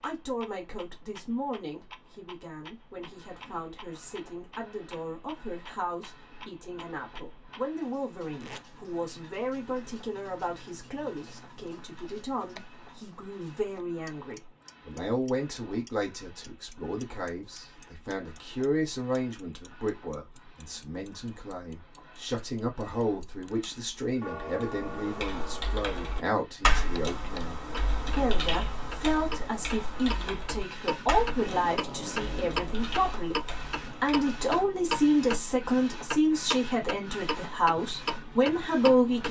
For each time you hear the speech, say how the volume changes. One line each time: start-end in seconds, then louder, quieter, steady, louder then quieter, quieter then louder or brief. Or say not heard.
0.0-39.2 louder.